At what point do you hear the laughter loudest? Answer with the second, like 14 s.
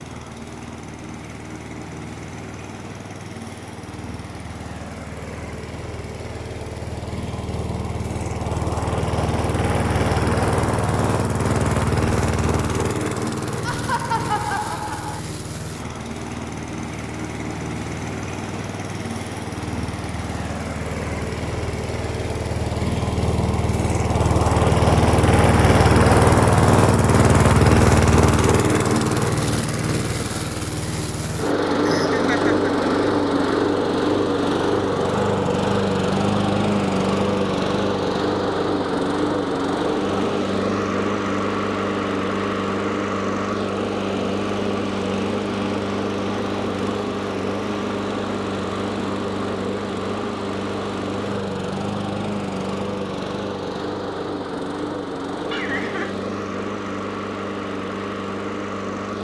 14 s.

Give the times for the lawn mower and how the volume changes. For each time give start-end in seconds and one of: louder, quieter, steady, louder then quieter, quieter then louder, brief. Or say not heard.
0.0-59.1 louder then quieter.